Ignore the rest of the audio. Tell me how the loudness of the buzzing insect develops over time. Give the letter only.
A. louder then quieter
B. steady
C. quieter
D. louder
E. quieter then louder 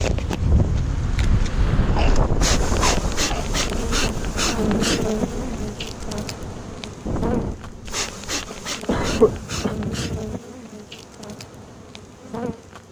A.